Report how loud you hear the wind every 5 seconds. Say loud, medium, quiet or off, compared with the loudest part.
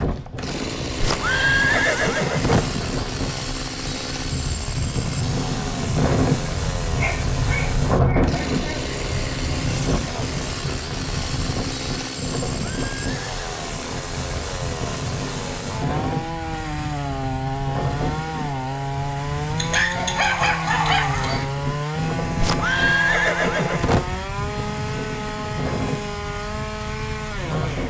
medium, loud, medium, medium, medium, medium.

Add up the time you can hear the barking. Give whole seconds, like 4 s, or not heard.
4 s.